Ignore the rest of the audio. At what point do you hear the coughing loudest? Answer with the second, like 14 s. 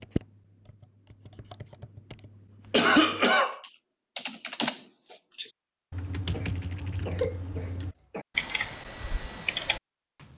3 s.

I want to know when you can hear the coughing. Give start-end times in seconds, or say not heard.
2.7-3.6, 6.3-8.2.